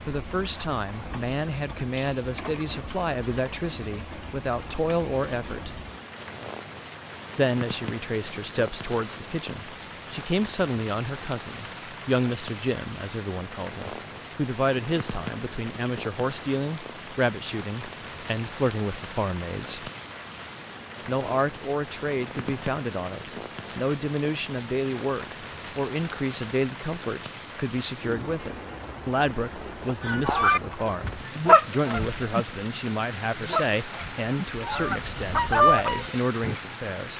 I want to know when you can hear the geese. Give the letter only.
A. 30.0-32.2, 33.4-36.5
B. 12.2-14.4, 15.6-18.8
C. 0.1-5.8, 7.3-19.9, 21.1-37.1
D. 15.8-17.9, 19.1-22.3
A.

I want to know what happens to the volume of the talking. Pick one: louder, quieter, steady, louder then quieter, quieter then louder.
steady.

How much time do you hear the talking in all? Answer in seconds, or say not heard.
34 s.